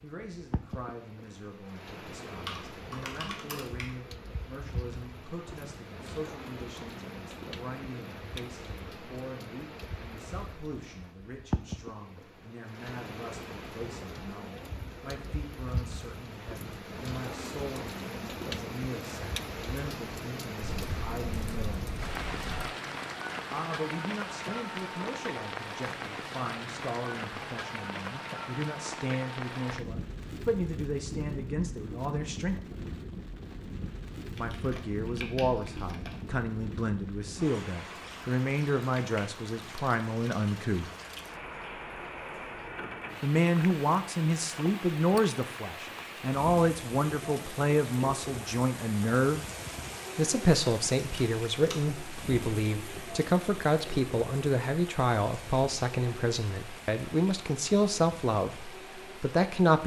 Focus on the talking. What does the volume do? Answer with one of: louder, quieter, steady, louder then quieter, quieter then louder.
louder.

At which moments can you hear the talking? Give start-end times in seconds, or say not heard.
0.0-21.9, 23.5-32.6, 34.4-40.9, 43.2-49.4, 50.1-59.8.